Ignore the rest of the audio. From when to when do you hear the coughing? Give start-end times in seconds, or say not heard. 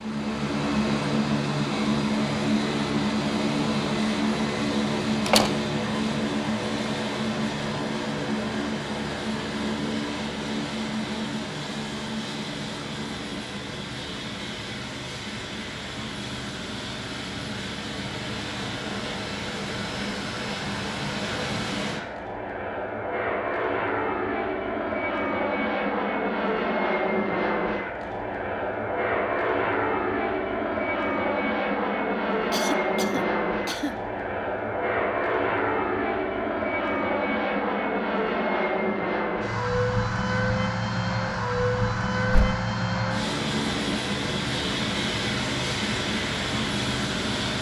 32.5-34.0.